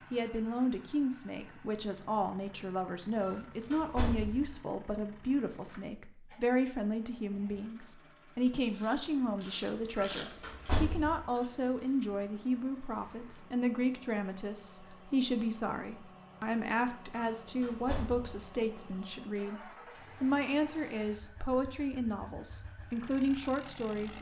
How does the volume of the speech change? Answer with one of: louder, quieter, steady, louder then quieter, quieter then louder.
steady.